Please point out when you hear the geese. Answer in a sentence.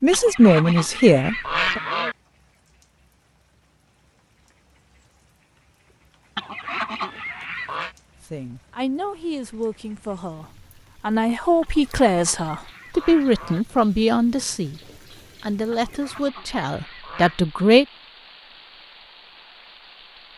The geese can be heard from 0.1 to 2.1 s, from 6.3 to 8.0 s, from 11.6 to 13.7 s and from 15.7 to 17.4 s.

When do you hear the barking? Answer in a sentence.
The barking can't be heard in this clip.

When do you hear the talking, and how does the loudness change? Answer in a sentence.
The talking can be heard briefly from 0.0 to 1.8 s; from 8.2 to 14.8 s, getting quieter then louder; and briefly from 15.4 to 17.9 s.